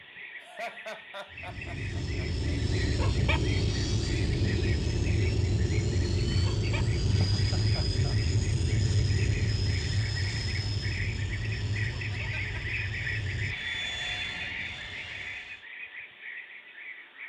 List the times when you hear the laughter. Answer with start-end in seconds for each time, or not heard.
0.4-2.5, 7.3-8.2, 12.1-12.7.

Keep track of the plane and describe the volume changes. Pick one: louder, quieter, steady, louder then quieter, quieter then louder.
quieter.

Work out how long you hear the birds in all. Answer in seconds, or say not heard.
17 s.